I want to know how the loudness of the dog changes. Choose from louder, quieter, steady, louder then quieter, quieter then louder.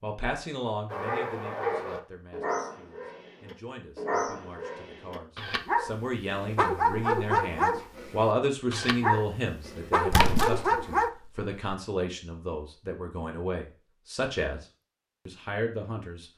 louder.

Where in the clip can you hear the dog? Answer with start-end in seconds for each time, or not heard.
0.9-11.1.